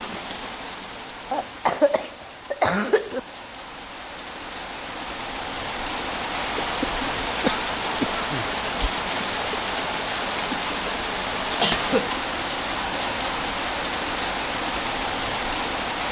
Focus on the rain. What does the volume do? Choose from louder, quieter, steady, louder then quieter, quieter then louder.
louder.